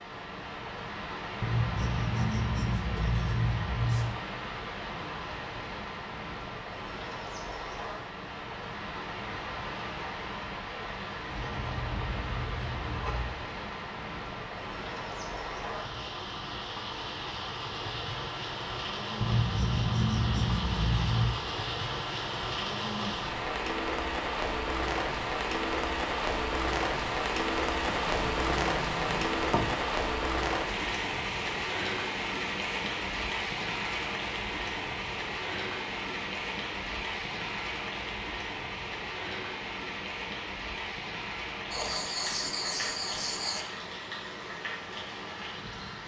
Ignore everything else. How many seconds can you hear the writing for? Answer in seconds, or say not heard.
11 s.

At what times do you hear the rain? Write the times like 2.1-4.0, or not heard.
0.0-46.0.